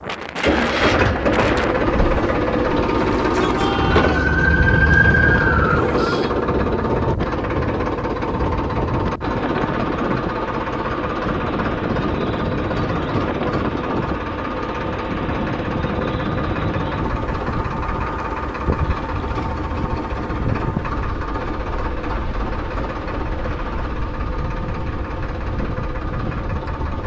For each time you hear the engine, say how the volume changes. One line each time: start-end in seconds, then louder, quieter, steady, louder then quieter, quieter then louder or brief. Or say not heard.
0.4-27.0 quieter.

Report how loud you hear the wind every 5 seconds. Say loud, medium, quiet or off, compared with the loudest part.
loud, loud, loud, loud, medium, medium.